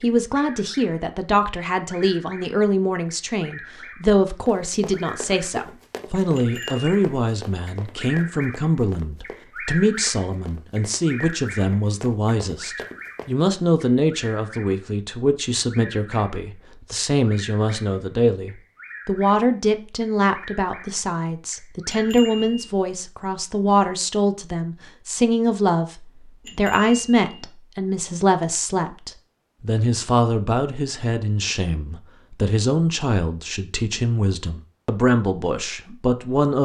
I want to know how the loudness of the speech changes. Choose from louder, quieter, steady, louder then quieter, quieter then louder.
steady.